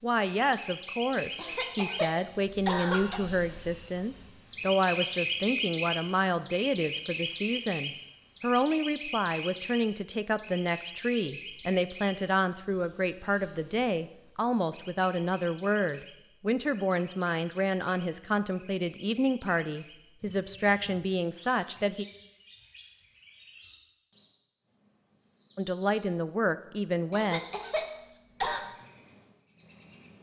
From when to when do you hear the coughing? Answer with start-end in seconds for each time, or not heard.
1.4-3.2, 27.1-28.6.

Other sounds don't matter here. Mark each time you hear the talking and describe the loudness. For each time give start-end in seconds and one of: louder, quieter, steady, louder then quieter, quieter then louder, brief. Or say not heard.
0.0-22.1 steady
25.6-27.4 brief.